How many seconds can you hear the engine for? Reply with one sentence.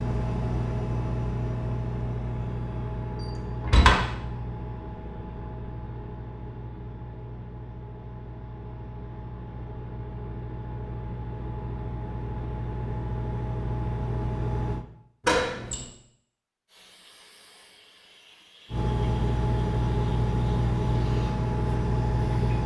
You can hear the engine for 19 seconds altogether.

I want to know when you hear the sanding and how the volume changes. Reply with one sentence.
You can't hear the sanding here.